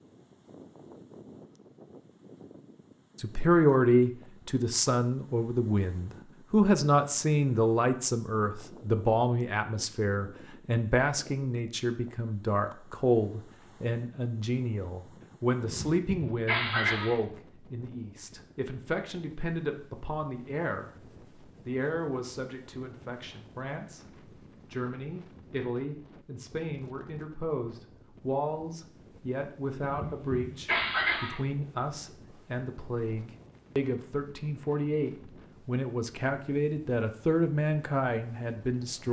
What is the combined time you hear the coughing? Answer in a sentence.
The coughing can be heard for 3 seconds in total.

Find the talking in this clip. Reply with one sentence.
The talking can be heard from 3.1 to 20.9 s, from 21.6 to 24.1 s and from 24.7 to 39.0 s.